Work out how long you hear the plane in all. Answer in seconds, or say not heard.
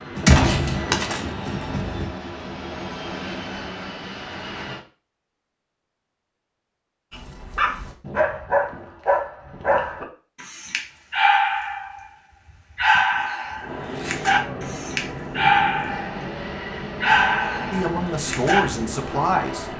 11 s.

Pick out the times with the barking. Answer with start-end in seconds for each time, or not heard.
7.1-12.1, 12.8-16.2, 17.0-18.6.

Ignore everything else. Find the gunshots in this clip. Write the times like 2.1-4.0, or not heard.
0.1-2.0.